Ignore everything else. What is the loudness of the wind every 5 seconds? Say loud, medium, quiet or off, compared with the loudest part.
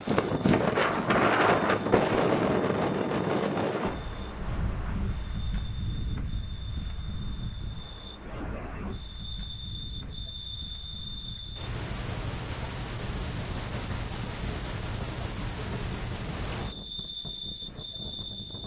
loud, quiet, quiet, quiet.